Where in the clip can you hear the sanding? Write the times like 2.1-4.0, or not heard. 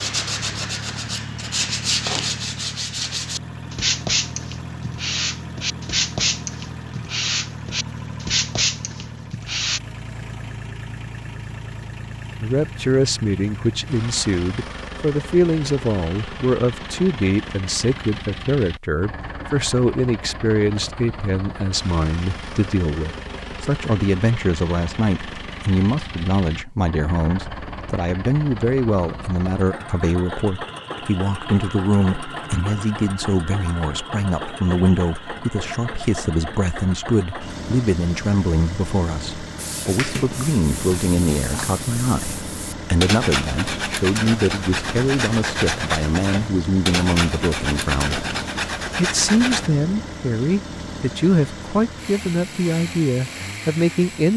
0.0-9.8, 39.5-49.7.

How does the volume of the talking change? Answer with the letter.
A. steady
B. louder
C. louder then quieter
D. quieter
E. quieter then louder
A.